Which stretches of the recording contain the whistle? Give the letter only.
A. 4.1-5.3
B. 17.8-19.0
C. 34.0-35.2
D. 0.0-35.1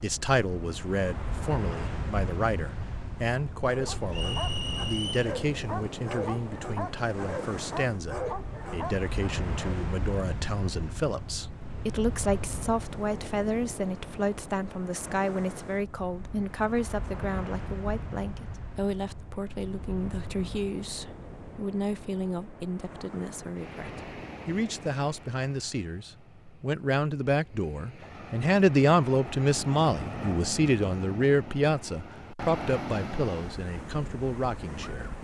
A.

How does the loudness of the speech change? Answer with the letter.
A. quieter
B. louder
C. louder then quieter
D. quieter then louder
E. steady
B.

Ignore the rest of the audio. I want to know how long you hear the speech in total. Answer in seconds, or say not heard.
35 s.